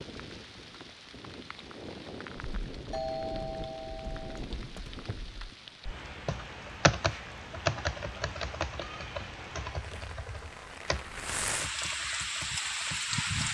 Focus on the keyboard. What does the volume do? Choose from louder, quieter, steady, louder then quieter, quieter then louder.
louder then quieter.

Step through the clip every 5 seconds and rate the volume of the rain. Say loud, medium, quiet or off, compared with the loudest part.
medium, medium, loud.